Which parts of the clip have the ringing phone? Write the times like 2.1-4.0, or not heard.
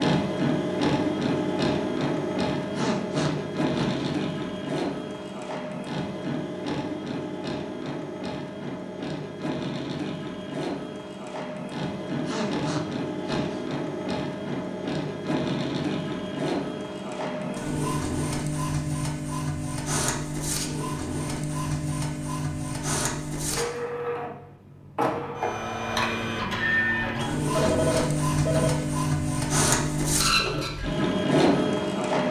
27.6-28.8.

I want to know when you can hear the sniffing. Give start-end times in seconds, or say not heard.
2.7-4.1, 12.2-13.7, 27.4-28.8.